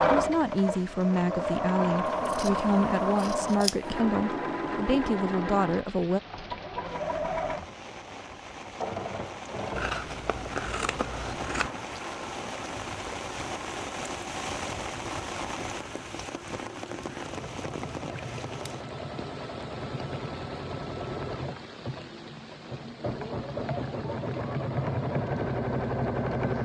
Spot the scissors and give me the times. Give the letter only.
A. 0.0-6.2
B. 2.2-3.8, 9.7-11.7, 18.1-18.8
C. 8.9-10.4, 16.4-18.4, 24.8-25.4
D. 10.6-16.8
B.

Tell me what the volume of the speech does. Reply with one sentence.
The volume of the speech stays about the same.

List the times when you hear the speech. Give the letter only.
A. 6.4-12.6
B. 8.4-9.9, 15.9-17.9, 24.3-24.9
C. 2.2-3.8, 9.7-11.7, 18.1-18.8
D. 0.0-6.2
D.